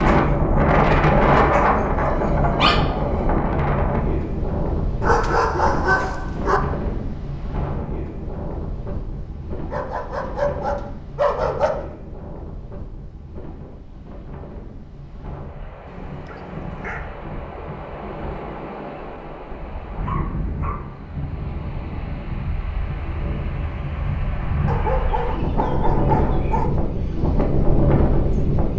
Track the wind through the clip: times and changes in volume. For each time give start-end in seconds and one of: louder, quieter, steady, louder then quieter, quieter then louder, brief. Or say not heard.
0.0-28.7 quieter then louder.